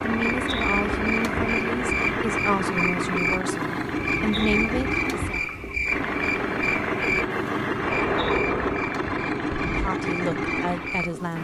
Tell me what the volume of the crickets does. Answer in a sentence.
The loudness of the crickets goes down.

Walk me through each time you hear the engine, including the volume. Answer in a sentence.
The engine can be heard from 0.0 to 11.3 s, at a steady volume.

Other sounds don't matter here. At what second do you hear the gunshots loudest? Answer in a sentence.
The volume of the gunshots peaks at 8 seconds.